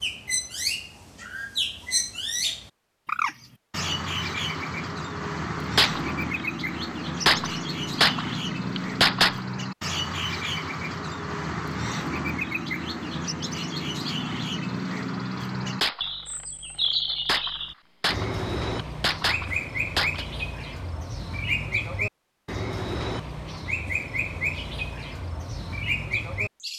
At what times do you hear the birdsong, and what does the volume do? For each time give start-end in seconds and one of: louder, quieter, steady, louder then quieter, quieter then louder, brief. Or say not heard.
0.0-26.7 steady.